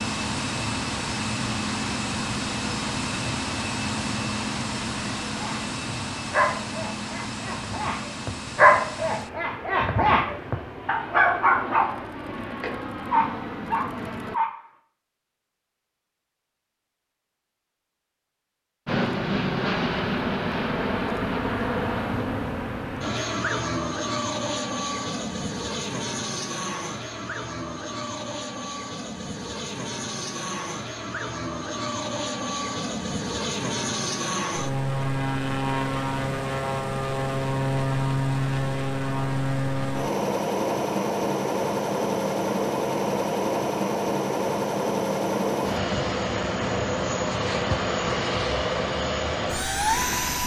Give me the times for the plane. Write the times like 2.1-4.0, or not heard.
0.0-14.4, 18.9-50.4.